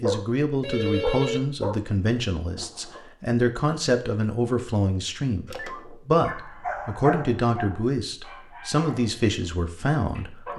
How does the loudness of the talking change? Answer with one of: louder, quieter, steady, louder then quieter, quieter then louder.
steady.